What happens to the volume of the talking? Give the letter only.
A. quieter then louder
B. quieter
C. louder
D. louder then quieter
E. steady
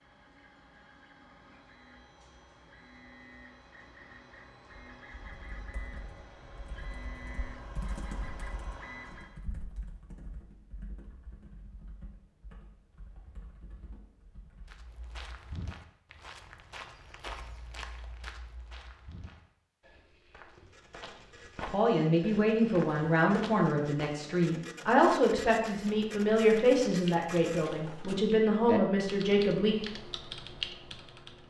E.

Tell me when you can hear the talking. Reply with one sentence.
The talking can be heard from 21.6 to 29.8 s.